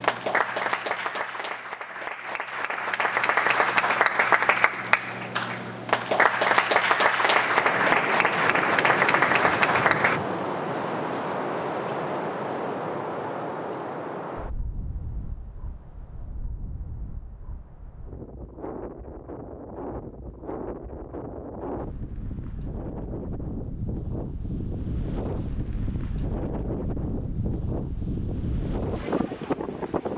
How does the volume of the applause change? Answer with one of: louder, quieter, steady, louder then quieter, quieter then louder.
louder.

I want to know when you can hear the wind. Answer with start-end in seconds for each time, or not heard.
7.2-30.1.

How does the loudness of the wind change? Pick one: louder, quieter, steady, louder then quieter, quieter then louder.
quieter then louder.